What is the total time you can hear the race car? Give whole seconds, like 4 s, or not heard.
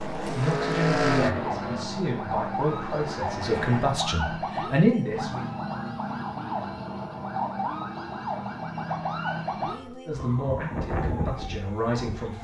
4 s.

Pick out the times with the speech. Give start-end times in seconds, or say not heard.
0.3-5.5, 10.1-12.3.